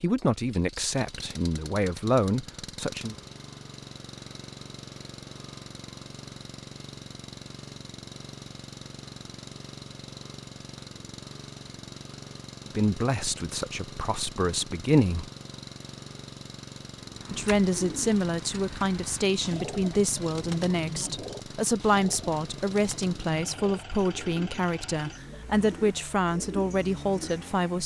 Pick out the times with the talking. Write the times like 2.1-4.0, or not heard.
0.0-3.1, 12.8-15.2, 17.3-27.8.